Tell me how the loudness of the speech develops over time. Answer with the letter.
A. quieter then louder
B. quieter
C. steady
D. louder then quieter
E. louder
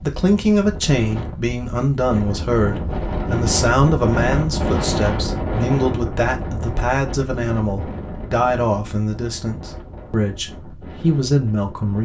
C.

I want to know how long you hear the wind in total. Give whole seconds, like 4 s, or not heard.
12 s.